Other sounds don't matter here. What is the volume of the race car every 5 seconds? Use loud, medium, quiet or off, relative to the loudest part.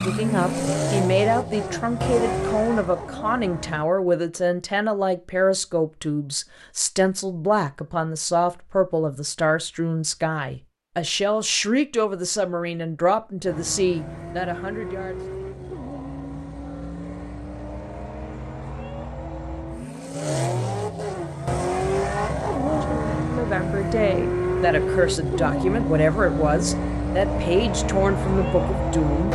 loud, off, medium, medium, loud, loud.